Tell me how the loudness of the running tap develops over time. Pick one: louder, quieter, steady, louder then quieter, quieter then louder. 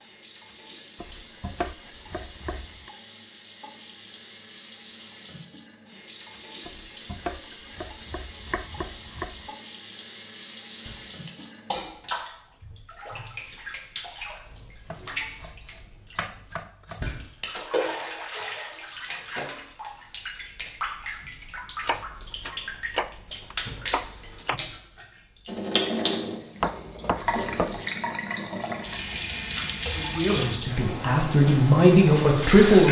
louder.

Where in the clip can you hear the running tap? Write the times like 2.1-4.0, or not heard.
0.0-32.8.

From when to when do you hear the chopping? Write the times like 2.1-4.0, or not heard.
0.9-2.9, 6.7-9.5, 14.9-17.1, 21.8-24.6, 26.6-27.8.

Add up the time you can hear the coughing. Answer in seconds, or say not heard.
2 s.